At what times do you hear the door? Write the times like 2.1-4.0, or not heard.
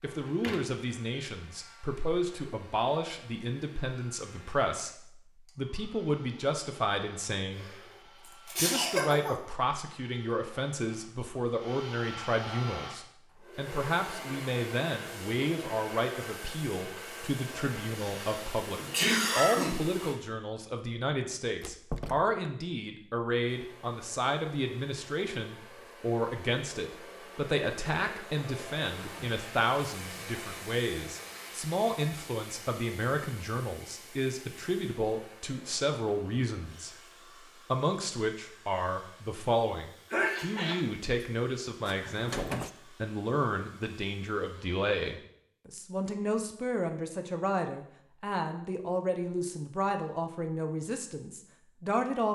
0.1-0.8, 21.6-22.3, 41.8-42.7.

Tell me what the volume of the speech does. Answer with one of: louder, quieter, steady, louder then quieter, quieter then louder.
steady.